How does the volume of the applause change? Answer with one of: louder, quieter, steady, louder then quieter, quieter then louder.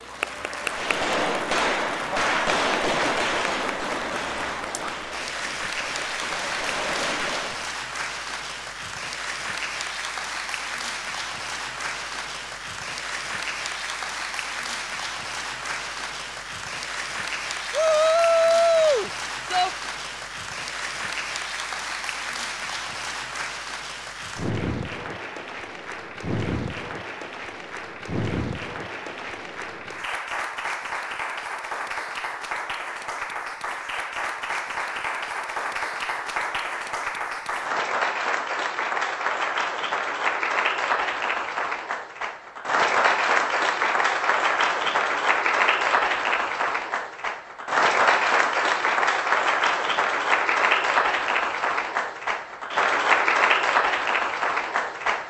louder.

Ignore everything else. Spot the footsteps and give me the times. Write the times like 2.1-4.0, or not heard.
not heard.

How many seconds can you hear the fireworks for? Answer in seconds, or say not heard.
7 s.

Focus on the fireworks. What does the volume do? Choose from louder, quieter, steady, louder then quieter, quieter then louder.
quieter then louder.